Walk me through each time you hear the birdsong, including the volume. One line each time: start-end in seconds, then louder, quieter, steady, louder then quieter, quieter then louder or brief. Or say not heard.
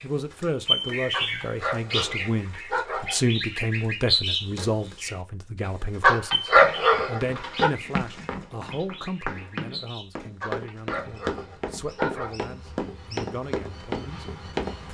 0.0-14.9 quieter.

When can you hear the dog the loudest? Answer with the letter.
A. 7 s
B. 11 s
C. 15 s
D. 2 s
A.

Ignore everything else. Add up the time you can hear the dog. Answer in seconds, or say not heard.
6 s.